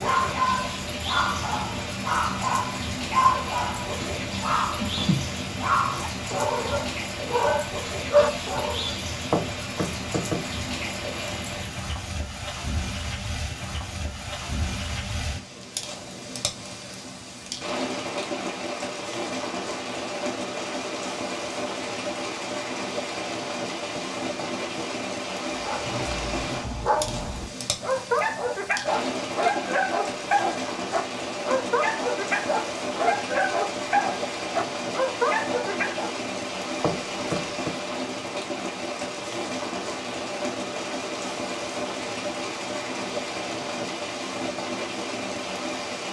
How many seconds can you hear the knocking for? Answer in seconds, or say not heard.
3 s.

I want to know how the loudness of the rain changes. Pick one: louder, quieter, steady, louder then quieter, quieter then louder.
steady.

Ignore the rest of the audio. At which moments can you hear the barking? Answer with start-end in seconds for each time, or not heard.
0.0-8.9, 25.6-36.1.